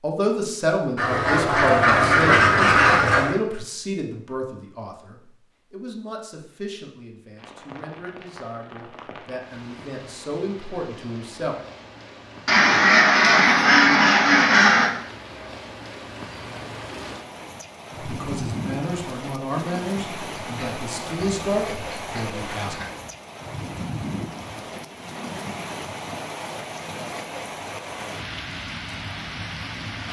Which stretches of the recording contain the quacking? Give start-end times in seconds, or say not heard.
0.9-3.4, 12.4-14.9, 20.4-23.1.